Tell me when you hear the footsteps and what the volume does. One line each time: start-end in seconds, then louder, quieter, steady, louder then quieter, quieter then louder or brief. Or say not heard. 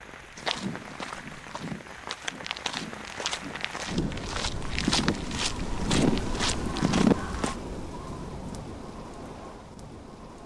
0.3-7.5 louder.